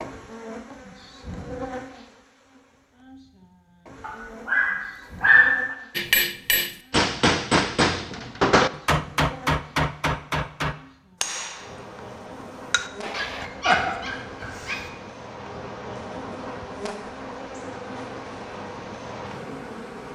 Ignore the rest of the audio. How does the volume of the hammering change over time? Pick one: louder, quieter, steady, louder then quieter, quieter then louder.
quieter.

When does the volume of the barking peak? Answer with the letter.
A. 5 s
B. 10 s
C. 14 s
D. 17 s
A.